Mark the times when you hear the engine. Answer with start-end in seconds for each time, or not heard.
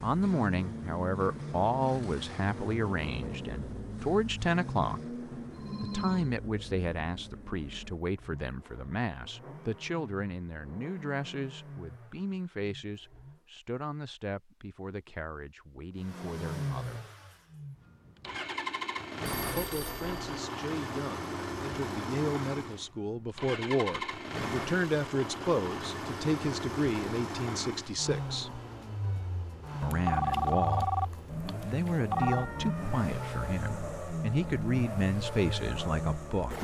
0.0-13.4, 15.9-36.5.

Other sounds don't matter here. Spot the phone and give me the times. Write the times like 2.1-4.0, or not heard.
5.5-6.3, 19.2-20.3, 29.9-32.5.